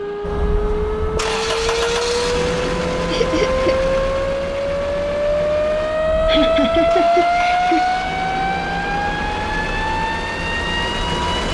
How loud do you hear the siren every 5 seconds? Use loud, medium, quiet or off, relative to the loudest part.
loud, loud, medium.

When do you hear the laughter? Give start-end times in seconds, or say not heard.
3.1-3.8, 6.2-7.8.